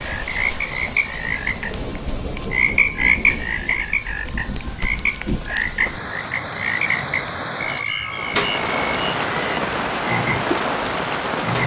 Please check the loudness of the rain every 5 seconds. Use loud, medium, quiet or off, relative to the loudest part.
medium, loud, loud.